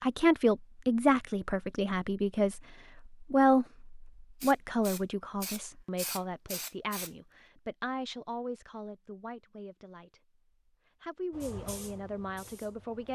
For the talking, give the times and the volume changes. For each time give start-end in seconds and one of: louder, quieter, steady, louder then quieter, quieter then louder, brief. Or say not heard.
0.0-10.2 quieter
11.0-13.1 brief.